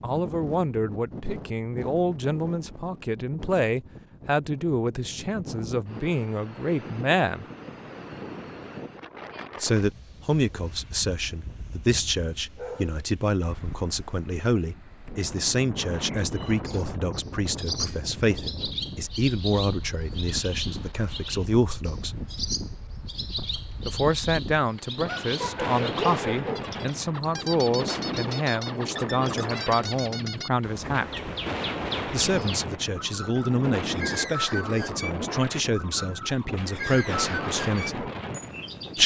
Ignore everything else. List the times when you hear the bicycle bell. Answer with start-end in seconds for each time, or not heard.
not heard.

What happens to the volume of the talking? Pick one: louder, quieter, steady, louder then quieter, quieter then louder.
steady.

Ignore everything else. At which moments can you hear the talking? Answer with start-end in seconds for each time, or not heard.
0.0-7.5, 9.6-22.1, 23.9-31.3, 32.0-38.1.